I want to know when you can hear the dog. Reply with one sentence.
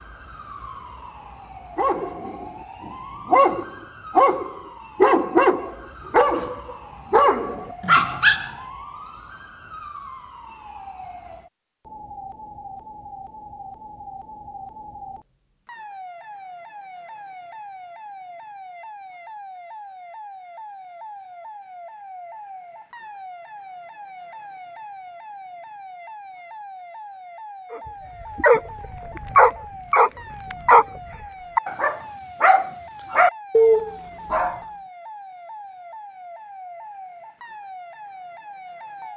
The dog can be heard from 1.8 to 8.5 s and from 27.7 to 34.6 s.